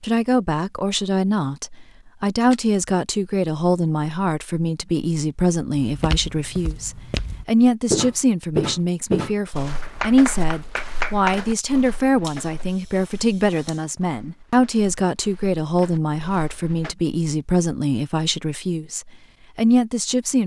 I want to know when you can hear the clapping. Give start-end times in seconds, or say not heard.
9.8-11.6.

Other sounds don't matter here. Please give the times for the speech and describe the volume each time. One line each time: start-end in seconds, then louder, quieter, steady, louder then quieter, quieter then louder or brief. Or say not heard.
0.0-20.4 steady.